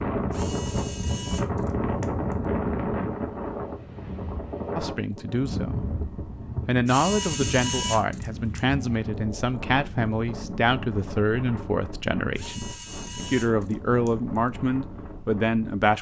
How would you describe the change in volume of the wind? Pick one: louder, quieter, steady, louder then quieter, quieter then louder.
quieter.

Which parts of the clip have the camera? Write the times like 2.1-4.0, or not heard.
0.3-2.3, 6.8-8.6, 12.3-14.5.